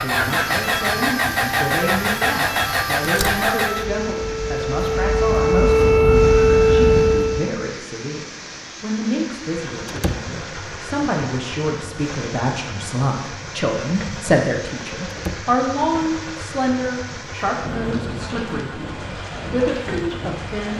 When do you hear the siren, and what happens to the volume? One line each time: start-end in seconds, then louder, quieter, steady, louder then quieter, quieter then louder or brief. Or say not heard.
0.0-7.5 louder.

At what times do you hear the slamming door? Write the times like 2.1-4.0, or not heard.
3.0-3.5, 9.8-10.3, 15.1-15.5.